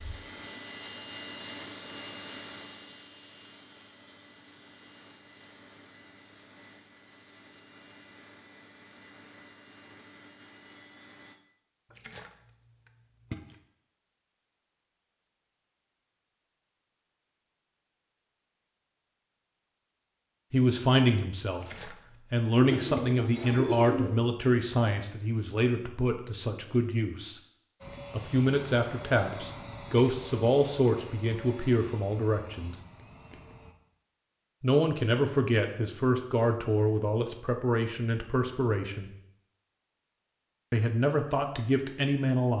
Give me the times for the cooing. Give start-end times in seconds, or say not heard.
22.6-24.1.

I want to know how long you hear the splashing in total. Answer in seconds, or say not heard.
3 s.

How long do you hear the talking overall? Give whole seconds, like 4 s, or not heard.
18 s.